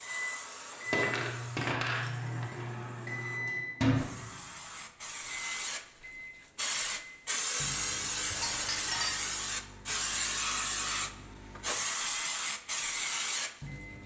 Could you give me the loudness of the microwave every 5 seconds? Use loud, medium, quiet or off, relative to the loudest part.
loud, quiet, quiet.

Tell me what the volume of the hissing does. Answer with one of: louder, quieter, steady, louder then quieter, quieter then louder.
louder.